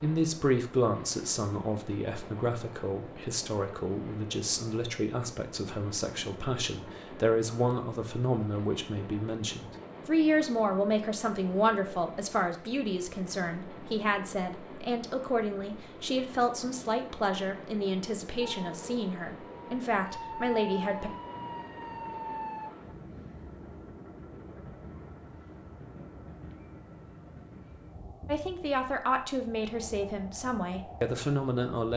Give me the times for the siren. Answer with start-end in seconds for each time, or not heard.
18.4-22.7.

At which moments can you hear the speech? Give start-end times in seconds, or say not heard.
0.0-21.1, 28.2-31.9.